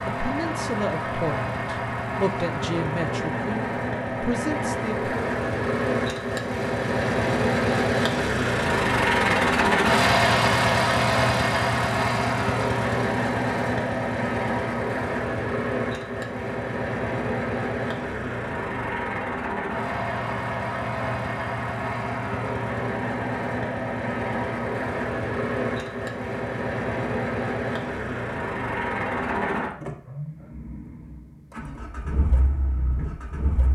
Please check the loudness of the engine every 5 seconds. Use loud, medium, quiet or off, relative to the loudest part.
medium, loud, loud, medium, medium, medium, quiet.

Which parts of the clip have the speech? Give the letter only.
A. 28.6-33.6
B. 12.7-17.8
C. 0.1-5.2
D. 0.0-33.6
C.